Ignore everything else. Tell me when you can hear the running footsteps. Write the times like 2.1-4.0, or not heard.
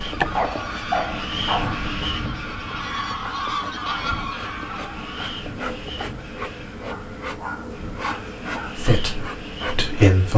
not heard.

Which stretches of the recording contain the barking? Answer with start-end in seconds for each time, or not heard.
0.3-1.9, 6.9-8.8.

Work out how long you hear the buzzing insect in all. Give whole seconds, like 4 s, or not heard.
10 s.